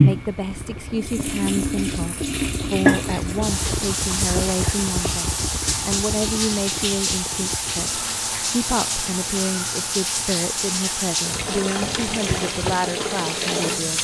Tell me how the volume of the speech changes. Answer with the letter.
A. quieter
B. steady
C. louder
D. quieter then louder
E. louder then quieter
B.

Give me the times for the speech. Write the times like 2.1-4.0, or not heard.
0.0-13.9.